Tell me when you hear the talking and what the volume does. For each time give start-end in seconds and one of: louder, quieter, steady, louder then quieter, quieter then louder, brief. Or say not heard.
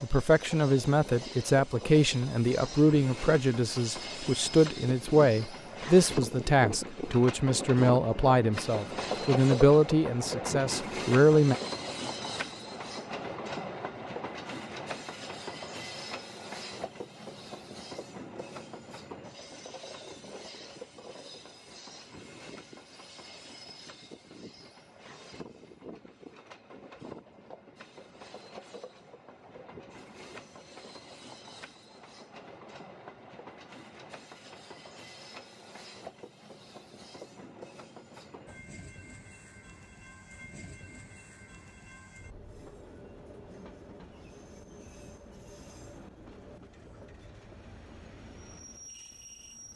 0.0-11.6 steady.